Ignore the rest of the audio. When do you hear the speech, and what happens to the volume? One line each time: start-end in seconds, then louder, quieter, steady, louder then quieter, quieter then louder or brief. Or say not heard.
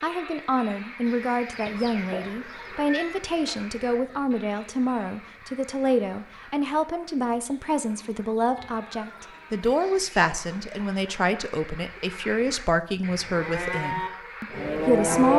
0.0-15.3 steady.